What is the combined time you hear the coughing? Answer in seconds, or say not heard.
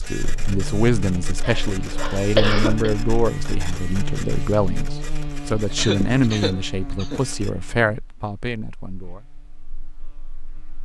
3 s.